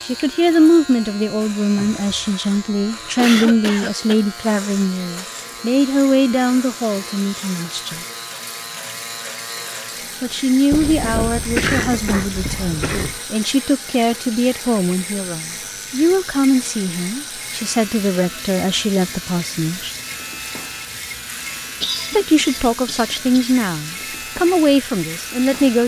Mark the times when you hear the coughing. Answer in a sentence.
You can hear the coughing from 3.1 to 4.2 s, from 10.7 to 13.2 s and from 21.8 to 23.6 s.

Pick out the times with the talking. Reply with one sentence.
You can hear the talking from 0.1 to 8.1 s, from 10.2 to 19.9 s and from 22.1 to 25.8 s.